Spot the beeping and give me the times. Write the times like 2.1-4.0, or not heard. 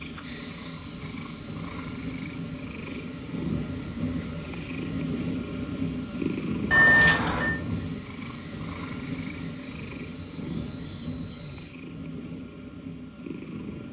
6.7-7.5.